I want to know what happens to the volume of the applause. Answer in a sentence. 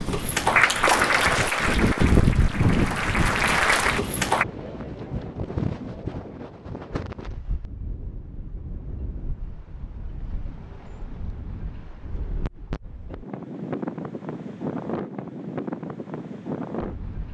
The loudness of the applause goes down, then up.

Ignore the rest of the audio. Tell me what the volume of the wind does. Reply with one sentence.
The volume of the wind goes down, then up.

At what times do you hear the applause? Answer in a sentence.
You can hear the applause from 0.0 to 4.5 s.